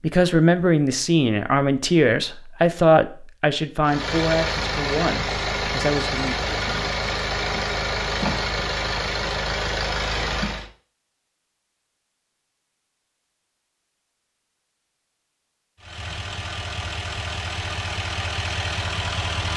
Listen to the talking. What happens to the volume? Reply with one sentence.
The volume of the talking goes down.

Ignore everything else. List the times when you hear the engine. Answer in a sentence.
You can hear the engine from 3.8 to 10.7 s and from 15.8 to 19.5 s.